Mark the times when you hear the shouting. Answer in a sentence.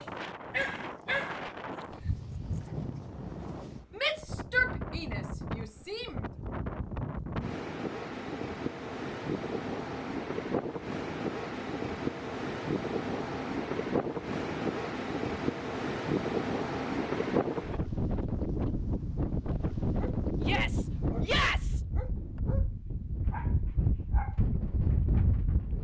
You can hear the shouting from 4.0 to 6.2 s and from 20.4 to 21.8 s.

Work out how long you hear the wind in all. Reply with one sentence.
You can hear the wind for 26 seconds altogether.